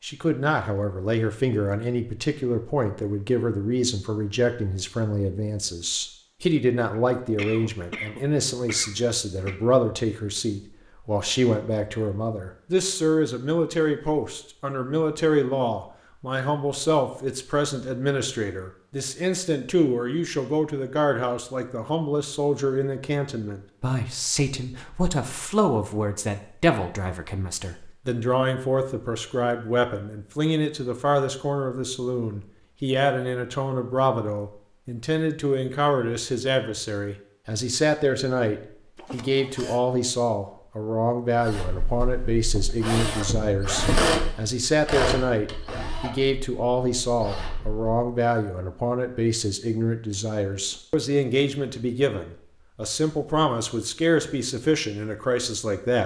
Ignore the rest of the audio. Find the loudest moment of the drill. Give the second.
44 s.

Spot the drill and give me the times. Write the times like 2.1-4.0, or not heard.
41.4-48.0.